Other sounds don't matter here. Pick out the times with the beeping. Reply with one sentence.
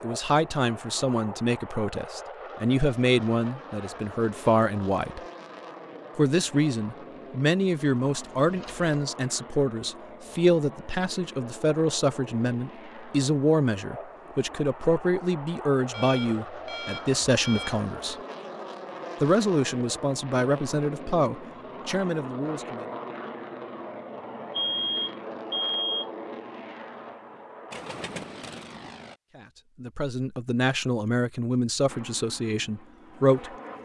You can hear the beeping from 8.2 to 8.9 s, from 15.9 to 17.7 s and from 24.5 to 26.1 s.